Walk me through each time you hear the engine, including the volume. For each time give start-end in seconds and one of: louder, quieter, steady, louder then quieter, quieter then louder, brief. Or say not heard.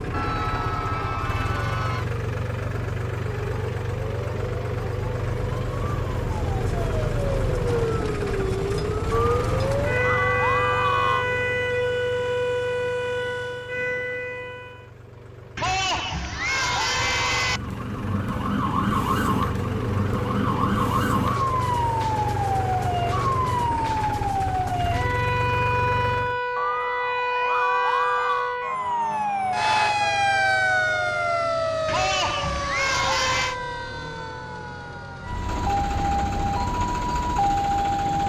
0.0-26.4 quieter then louder
29.3-38.2 louder.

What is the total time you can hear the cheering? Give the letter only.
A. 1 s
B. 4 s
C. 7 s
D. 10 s
D.